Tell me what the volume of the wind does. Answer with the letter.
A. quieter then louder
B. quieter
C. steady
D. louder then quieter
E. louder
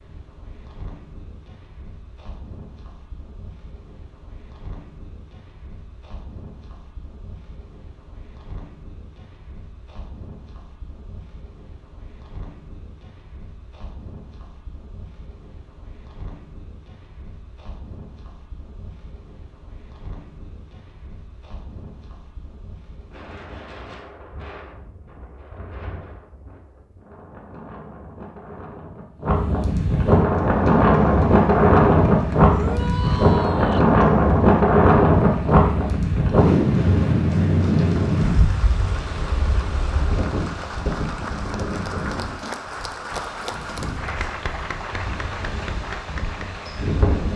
D.